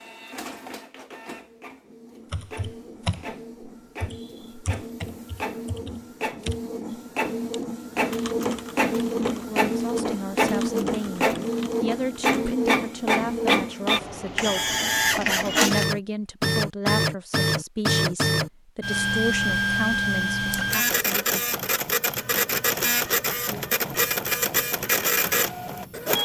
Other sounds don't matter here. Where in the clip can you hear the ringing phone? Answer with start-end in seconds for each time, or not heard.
not heard.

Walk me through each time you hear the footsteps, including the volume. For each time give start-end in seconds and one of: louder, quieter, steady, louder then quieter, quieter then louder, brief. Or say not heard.
not heard.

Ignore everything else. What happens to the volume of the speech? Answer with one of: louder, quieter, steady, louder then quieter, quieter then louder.
steady.